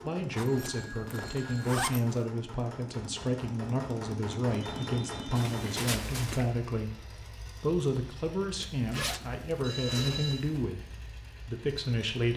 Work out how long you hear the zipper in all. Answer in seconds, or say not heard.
5 s.